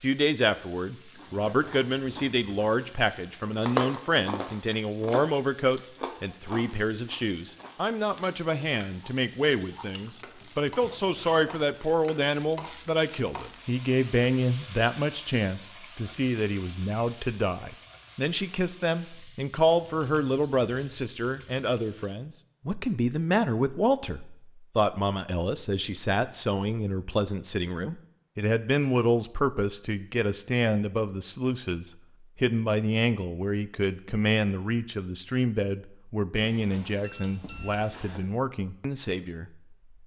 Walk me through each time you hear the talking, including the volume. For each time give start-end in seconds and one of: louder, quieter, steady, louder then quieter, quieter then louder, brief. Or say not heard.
0.0-39.5 steady.